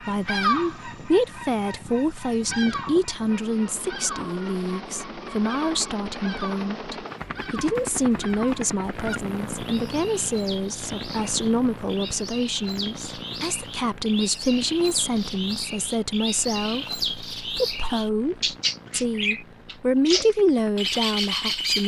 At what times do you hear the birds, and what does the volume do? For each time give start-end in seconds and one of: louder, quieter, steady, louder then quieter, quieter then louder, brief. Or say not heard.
0.0-21.8 quieter then louder.